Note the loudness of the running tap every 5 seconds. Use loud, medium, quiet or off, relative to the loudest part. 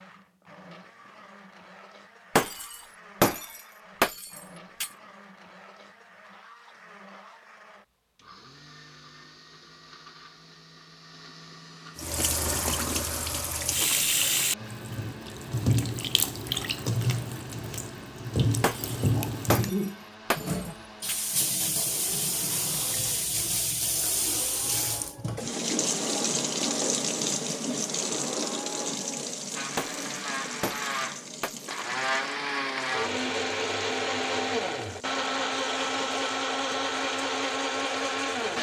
off, off, loud, loud, loud, loud, quiet, quiet.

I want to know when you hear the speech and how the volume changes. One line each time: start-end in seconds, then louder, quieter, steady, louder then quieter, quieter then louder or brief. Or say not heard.
not heard.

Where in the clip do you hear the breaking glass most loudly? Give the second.
3 s.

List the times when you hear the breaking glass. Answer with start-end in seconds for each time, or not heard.
2.4-4.9, 18.6-21.3, 29.8-31.7.